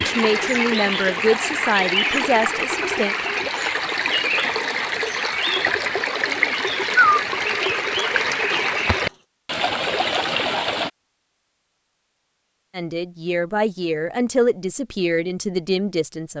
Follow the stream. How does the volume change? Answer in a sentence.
The volume of the stream stays about the same.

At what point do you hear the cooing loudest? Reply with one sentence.
The loudest moment of the cooing is at 7 seconds.